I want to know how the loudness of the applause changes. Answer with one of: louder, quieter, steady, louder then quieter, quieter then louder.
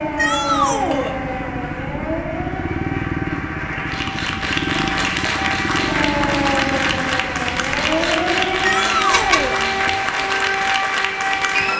louder.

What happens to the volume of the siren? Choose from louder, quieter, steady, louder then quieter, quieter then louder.
quieter then louder.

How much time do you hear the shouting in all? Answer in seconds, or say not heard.
2 s.